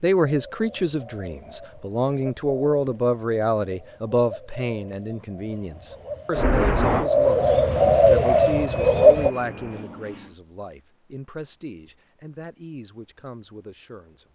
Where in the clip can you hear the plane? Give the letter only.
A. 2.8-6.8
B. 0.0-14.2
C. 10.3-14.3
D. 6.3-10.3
D.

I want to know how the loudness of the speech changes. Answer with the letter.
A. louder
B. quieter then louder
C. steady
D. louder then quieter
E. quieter
E.